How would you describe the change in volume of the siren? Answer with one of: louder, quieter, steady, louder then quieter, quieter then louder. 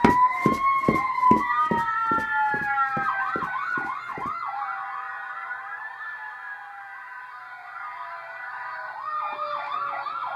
quieter then louder.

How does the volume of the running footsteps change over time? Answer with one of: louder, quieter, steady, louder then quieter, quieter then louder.
quieter.